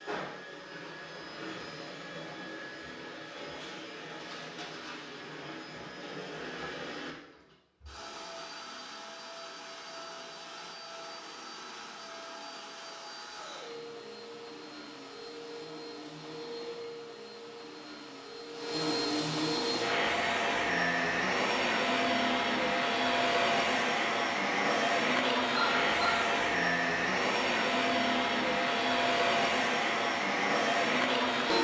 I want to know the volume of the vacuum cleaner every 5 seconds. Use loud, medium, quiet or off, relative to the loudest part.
quiet, quiet, quiet, medium, loud, loud, loud.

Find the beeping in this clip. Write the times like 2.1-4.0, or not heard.
25.6-26.2.